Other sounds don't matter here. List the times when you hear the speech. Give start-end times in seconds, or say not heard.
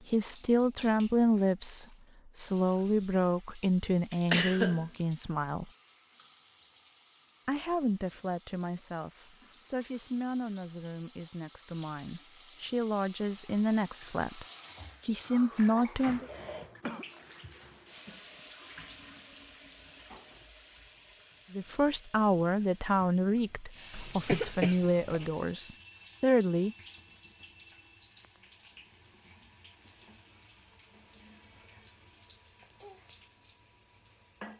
0.1-5.7, 7.5-14.4, 15.1-16.2, 21.5-26.8.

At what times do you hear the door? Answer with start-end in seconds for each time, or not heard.
not heard.